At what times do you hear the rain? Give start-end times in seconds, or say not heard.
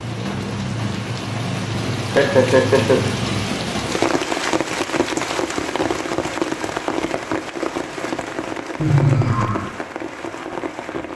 0.0-11.1.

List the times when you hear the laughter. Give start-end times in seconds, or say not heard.
2.1-3.0, 8.8-9.7.